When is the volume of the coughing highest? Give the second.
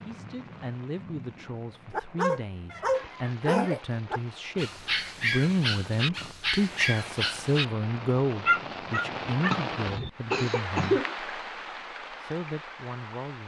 11 s.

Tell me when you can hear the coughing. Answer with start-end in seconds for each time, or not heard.
2.7-3.9, 9.5-11.2.